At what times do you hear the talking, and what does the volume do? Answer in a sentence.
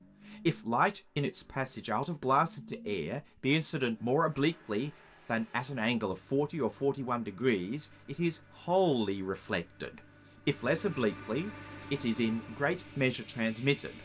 You can hear the talking from 0.3 to 14.0 s, at a steady volume.